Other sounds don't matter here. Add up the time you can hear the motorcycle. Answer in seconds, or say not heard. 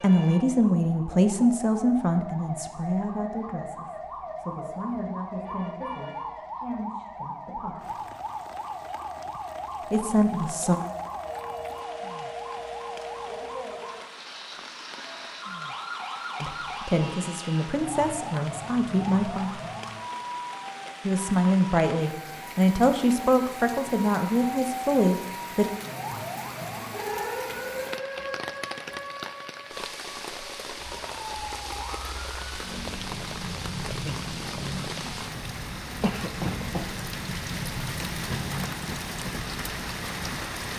not heard.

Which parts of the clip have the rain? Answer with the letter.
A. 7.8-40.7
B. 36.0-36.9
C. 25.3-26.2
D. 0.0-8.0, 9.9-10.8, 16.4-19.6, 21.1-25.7
A.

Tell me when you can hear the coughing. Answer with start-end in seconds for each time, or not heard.
36.0-36.9.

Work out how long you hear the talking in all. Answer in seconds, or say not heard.
17 s.